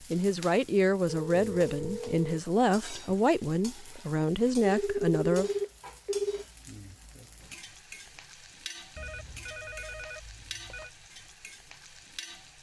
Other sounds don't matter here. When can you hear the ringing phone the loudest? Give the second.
5 s.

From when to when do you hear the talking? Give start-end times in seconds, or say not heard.
0.1-5.5.